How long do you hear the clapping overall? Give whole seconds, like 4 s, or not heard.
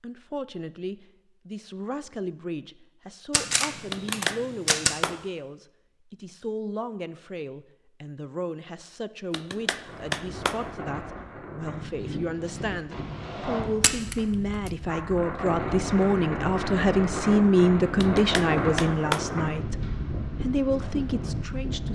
4 s.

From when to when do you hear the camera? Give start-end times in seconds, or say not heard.
3.3-5.0, 13.8-14.7.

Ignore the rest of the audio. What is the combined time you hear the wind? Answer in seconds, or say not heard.
12 s.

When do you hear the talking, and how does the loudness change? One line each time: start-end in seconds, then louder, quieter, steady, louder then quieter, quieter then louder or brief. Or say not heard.
0.0-21.8 louder.